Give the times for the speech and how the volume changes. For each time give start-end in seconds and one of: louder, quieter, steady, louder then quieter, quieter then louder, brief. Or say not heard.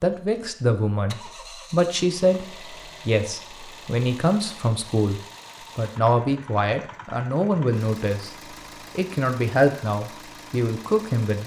0.0-8.3 steady
8.9-11.4 brief.